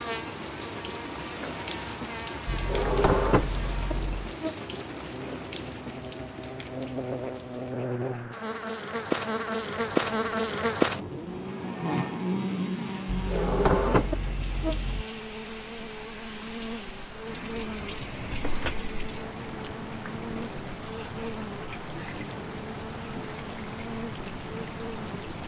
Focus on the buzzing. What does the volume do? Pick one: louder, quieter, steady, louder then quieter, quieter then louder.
louder then quieter.